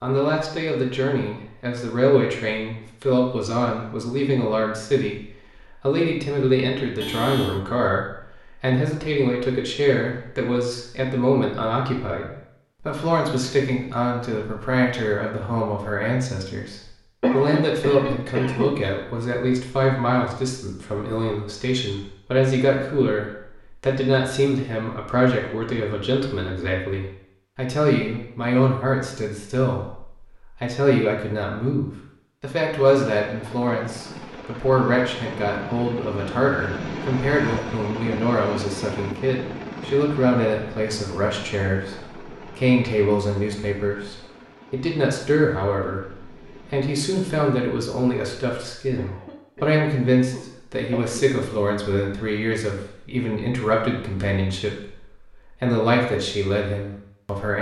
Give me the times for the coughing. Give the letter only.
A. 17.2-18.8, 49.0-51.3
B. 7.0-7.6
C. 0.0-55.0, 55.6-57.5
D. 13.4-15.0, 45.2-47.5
A.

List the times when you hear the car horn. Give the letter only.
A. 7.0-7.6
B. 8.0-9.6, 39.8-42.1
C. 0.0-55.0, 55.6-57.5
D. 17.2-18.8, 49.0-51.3
A.